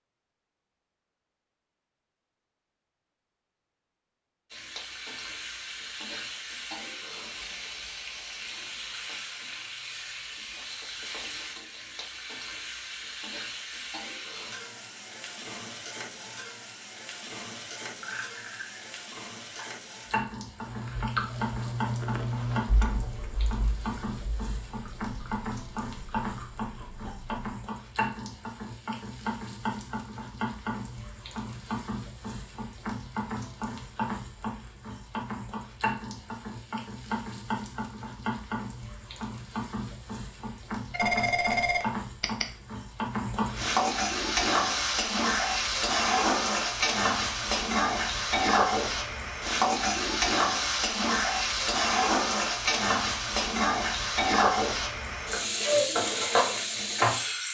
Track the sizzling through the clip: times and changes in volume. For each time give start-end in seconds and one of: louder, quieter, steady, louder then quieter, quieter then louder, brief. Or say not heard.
4.5-57.4 louder.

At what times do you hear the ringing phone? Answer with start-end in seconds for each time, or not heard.
40.9-42.5.